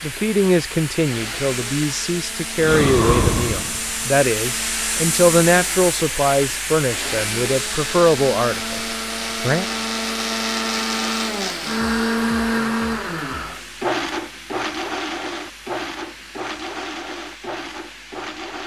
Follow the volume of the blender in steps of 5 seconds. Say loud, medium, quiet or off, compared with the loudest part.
quiet, medium, loud, medium.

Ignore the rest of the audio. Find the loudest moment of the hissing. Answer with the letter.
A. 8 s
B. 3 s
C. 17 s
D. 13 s
B.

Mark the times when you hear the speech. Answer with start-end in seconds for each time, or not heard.
0.0-9.7.